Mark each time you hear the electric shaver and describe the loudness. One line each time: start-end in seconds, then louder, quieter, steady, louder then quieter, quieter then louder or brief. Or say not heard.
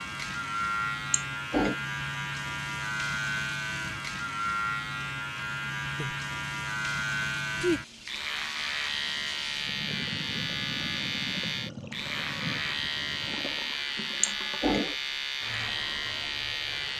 0.0-16.9 steady.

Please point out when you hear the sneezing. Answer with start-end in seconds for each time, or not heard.
1.1-1.8, 14.2-14.9.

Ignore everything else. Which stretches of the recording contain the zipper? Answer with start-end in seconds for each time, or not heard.
not heard.